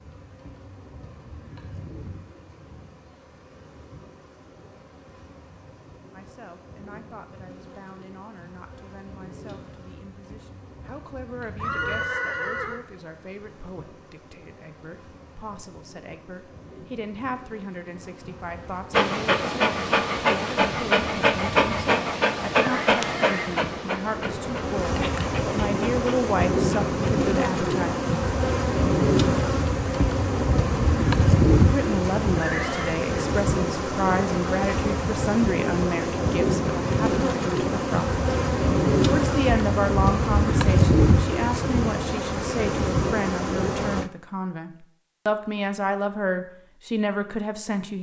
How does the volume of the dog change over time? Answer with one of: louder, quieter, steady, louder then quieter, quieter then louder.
quieter.